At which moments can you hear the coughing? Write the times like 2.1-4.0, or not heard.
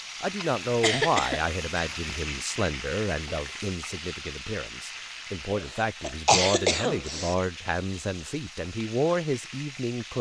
0.3-2.1, 5.5-7.3.